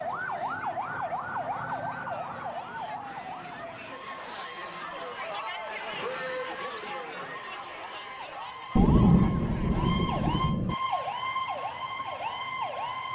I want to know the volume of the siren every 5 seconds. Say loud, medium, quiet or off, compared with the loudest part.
loud, medium, loud.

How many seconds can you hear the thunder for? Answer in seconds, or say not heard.
2 s.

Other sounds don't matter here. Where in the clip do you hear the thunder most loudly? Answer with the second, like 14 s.
9 s.